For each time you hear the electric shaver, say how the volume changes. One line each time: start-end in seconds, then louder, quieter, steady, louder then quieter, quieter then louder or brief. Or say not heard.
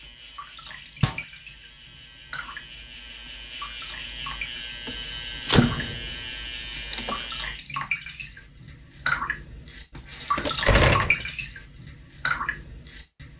0.0-7.6 louder.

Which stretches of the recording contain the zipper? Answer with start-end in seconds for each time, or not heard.
not heard.